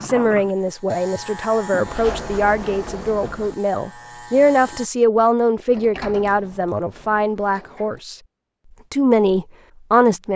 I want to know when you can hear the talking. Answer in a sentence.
The talking can be heard from 0.0 to 8.2 s and from 8.9 to 10.3 s.